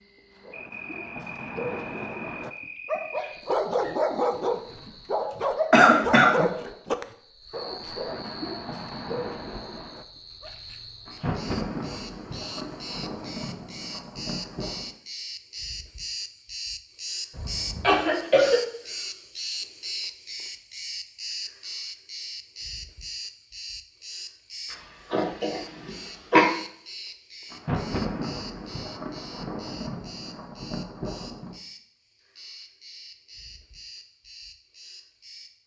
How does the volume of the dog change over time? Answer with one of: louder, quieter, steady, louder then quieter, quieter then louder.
louder then quieter.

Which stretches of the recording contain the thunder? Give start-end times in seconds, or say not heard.
11.1-14.9, 27.5-31.6.